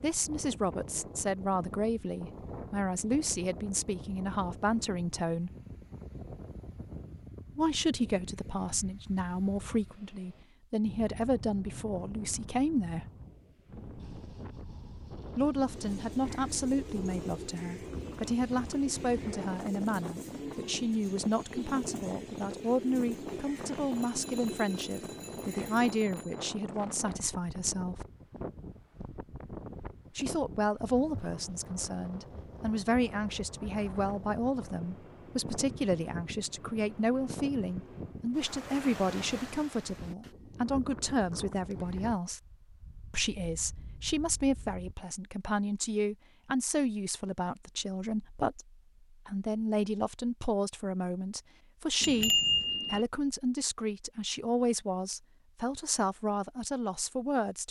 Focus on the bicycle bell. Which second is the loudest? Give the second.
52 s.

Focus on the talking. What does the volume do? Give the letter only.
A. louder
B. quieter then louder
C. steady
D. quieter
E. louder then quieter
C.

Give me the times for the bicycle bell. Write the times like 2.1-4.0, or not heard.
24.1-26.4, 52.0-53.0.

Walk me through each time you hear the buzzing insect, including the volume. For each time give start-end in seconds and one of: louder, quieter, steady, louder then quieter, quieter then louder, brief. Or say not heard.
not heard.